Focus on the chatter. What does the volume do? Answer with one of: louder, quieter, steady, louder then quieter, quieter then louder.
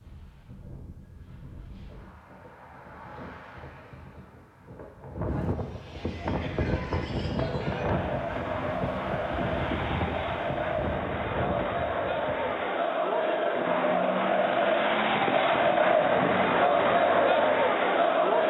louder.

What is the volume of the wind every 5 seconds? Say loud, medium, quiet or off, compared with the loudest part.
quiet, loud, loud, off.